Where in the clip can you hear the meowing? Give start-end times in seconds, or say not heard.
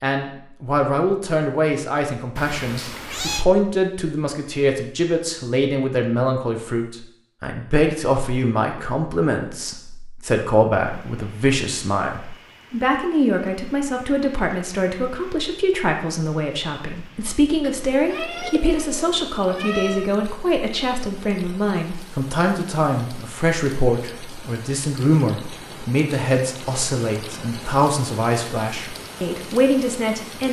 2.4-3.5, 17.6-20.1.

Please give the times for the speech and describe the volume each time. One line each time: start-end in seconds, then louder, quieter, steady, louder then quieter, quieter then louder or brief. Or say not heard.
0.0-30.4 steady.